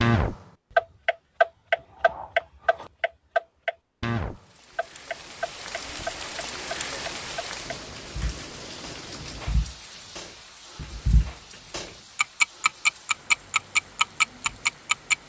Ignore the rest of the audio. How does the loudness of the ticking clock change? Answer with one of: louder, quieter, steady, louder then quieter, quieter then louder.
quieter then louder.